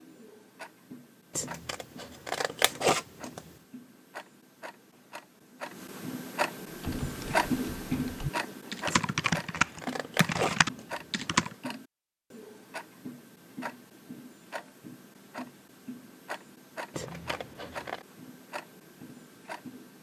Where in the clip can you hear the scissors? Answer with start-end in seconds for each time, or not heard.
1.4-3.4, 8.9-11.5, 16.9-18.1.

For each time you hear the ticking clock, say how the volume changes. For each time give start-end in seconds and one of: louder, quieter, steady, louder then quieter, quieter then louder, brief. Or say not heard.
0.0-19.9 louder then quieter.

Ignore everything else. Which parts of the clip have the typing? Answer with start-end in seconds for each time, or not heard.
6.8-11.6.